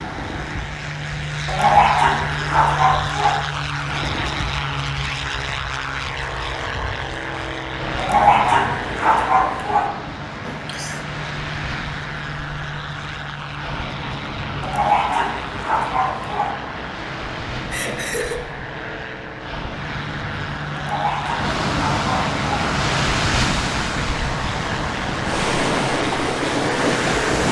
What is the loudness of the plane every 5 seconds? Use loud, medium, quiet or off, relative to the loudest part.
loud, loud, medium, medium, loud, loud.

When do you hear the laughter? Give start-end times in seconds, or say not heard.
10.4-11.1, 17.7-18.4.